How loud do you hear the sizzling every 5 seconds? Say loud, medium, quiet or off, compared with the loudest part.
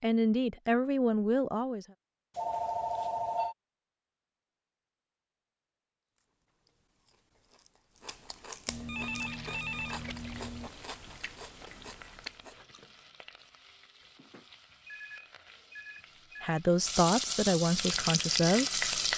off, off, quiet, loud.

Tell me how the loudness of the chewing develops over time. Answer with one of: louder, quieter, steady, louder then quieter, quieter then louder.
louder.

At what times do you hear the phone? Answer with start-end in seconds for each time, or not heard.
2.4-3.5, 8.7-10.7, 14.2-16.6.